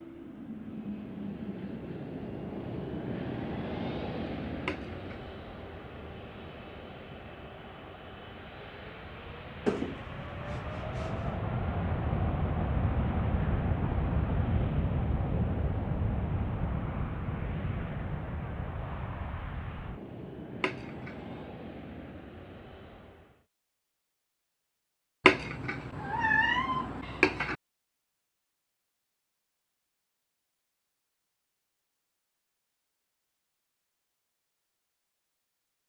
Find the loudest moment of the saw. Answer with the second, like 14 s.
10 s.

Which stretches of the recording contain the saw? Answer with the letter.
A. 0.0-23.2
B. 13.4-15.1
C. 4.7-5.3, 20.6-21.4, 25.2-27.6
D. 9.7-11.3
D.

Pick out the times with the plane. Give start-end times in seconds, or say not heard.
0.0-23.2.